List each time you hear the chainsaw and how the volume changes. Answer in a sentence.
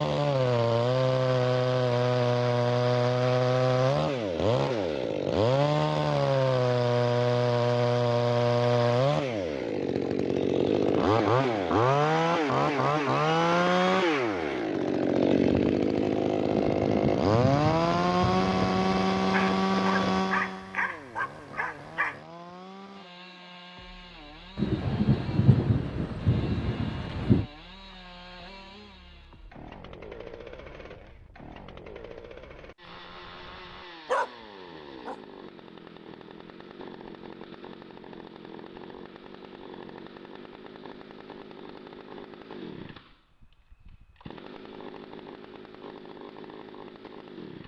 You can hear the chainsaw from 0.0 to 47.6 s, getting quieter.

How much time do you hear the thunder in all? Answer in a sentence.
You can hear the thunder for 5 seconds altogether.